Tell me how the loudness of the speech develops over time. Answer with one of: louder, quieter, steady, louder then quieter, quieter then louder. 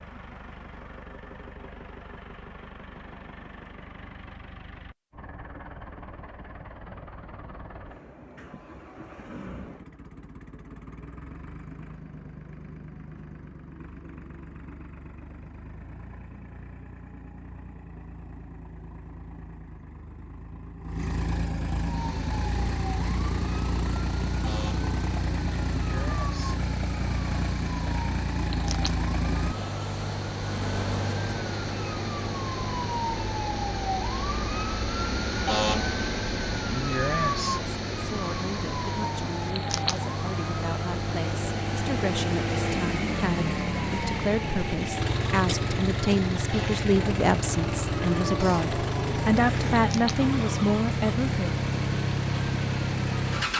louder.